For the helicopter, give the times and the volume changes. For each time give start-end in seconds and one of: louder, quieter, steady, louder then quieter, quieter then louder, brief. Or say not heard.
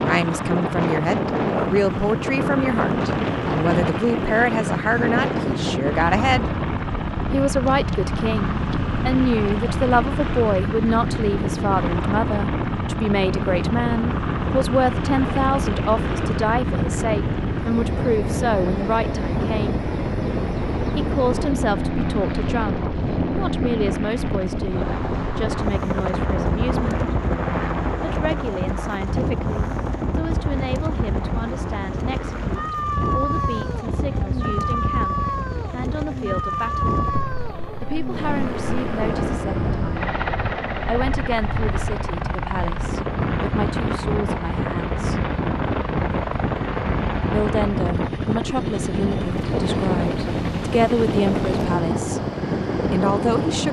0.0-53.6 steady.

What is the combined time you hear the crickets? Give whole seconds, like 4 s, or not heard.
not heard.